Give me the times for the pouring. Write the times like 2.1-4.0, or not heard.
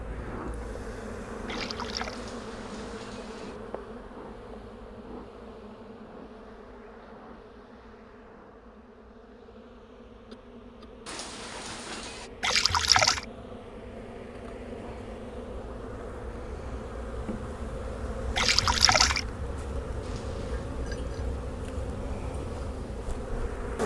1.4-2.2, 12.4-13.2, 18.4-19.2.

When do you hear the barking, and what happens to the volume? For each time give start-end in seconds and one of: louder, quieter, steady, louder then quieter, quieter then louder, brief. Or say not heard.
not heard.